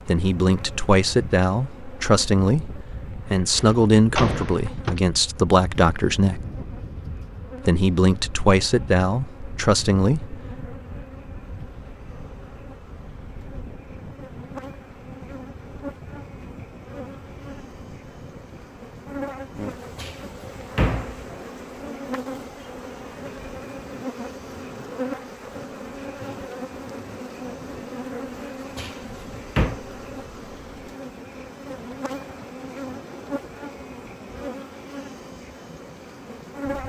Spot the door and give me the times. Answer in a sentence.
The door can be heard from 3.5 to 5.0 s, from 19.9 to 21.2 s and from 28.8 to 29.8 s.